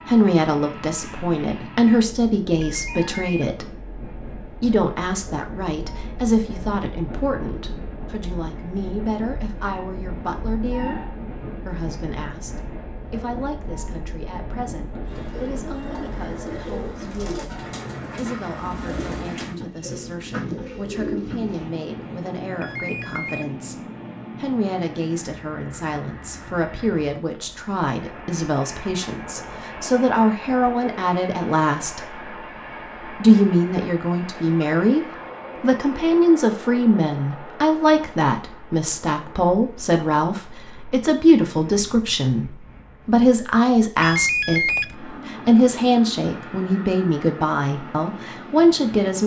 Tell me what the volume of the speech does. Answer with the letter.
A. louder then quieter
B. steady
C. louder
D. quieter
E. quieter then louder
E.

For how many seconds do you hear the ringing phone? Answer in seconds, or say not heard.
3 s.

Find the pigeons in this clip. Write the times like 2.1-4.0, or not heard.
15.1-21.6.